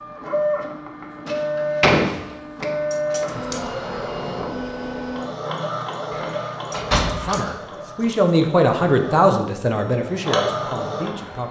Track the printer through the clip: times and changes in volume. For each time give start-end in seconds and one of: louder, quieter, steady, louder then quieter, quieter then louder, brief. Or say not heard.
0.0-11.4 quieter then louder.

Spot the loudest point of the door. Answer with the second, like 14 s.
2 s.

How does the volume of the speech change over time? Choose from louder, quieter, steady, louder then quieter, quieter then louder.
louder then quieter.